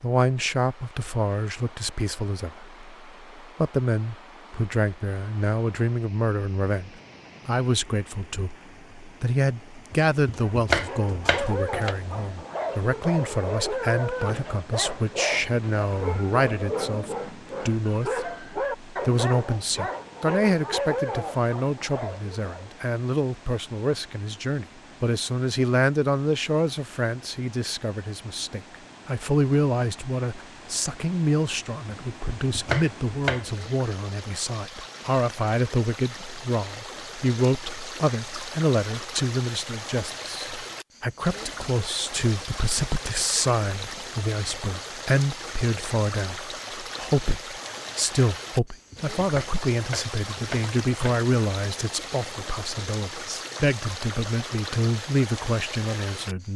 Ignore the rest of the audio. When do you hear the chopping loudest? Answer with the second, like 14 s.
11 s.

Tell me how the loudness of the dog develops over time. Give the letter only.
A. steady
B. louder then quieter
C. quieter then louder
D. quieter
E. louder
A.